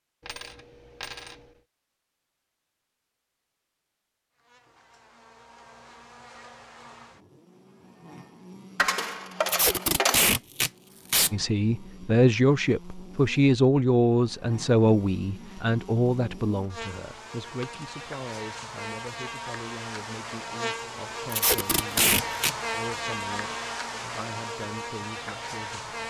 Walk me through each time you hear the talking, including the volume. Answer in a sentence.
The talking can be heard from 11.3 to 26.0 s, getting quieter.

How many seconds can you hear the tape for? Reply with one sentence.
The tape can be heard for 3 seconds in total.